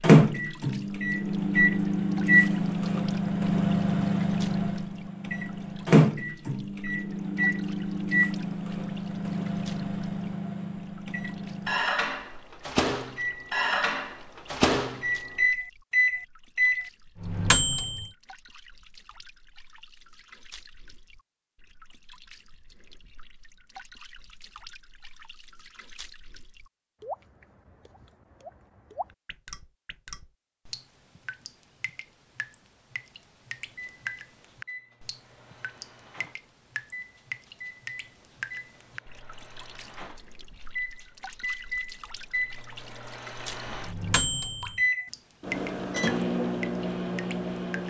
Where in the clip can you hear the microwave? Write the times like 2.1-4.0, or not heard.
0.0-18.1, 33.8-47.8.